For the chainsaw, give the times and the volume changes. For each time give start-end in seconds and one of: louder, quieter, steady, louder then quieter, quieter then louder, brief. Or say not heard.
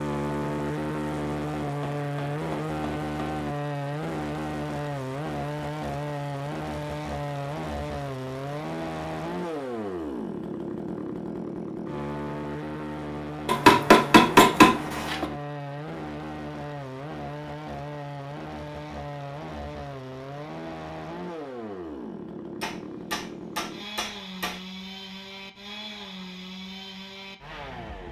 0.0-28.0 quieter.